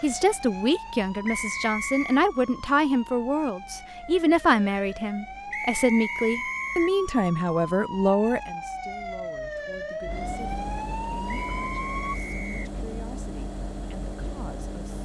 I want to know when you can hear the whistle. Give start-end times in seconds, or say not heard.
1.2-2.2, 5.5-6.9, 11.2-12.8.